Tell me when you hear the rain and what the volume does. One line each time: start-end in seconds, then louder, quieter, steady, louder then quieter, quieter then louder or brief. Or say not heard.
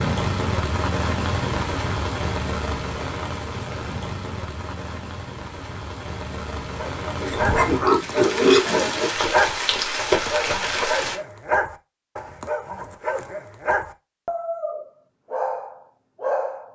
0.0-11.2 quieter then louder.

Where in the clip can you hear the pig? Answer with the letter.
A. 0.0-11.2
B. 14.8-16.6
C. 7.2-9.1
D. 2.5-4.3
C.